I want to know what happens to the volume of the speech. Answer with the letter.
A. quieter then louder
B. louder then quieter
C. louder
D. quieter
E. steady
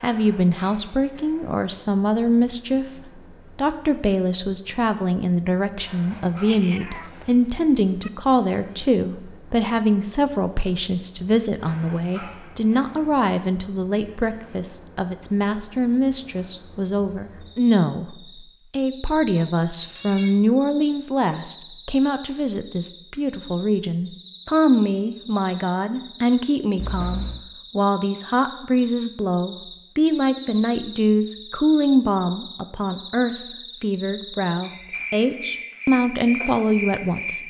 E.